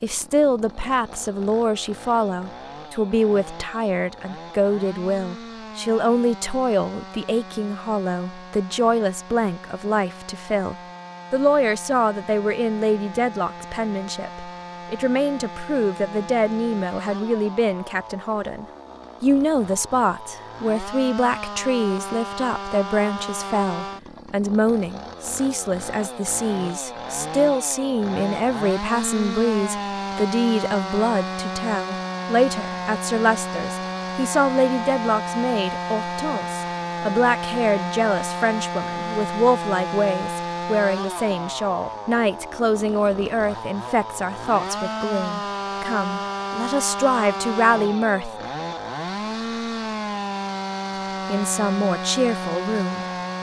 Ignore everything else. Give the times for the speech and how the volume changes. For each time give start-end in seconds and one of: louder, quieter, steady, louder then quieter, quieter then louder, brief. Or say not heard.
0.0-48.3 steady
51.2-53.0 brief.